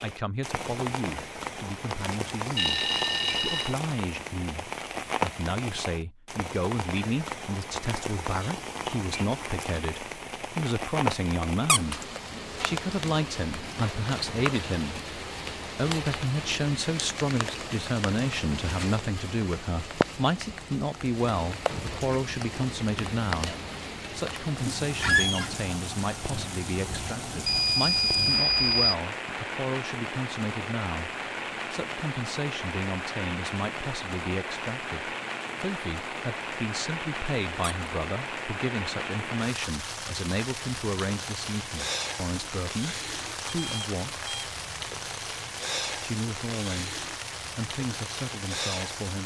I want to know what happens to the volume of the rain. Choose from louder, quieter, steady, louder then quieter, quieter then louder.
steady.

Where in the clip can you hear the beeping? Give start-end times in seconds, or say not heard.
1.9-3.8, 27.4-28.9, 43.5-44.5.